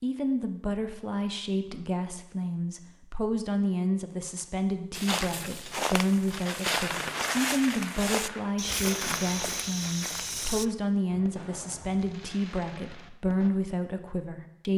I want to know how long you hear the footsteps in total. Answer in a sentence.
The footsteps can be heard for 6 seconds in total.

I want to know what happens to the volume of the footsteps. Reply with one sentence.
The volume of the footsteps stays about the same.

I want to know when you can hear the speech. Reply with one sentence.
You can hear the speech from 0.0 to 14.7 s.